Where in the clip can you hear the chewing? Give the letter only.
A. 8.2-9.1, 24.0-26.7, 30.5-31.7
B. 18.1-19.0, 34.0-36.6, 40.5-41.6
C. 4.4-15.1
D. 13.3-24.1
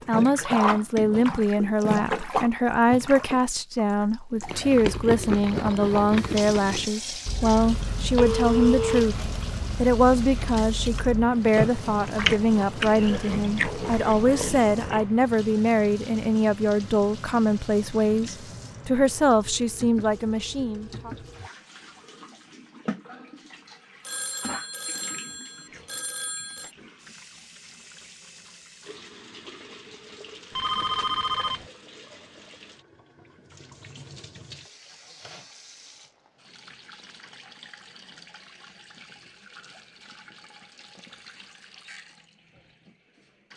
C.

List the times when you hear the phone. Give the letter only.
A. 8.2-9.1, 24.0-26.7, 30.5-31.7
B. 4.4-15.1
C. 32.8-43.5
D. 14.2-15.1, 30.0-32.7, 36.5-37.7
A.